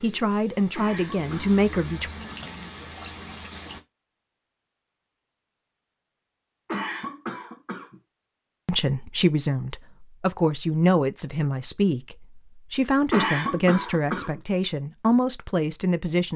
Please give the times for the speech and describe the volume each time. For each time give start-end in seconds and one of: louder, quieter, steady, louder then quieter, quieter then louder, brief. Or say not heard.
0.0-2.1 brief
8.7-16.3 steady.